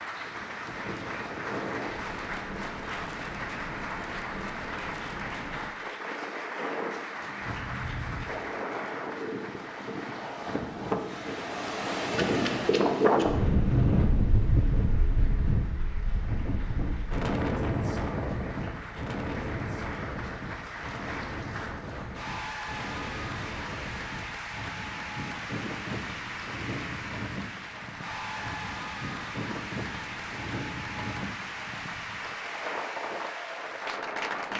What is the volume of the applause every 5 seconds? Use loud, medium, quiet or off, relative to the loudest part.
loud, loud, medium, medium, loud, loud, loud.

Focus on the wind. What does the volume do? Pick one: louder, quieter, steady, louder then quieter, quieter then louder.
louder then quieter.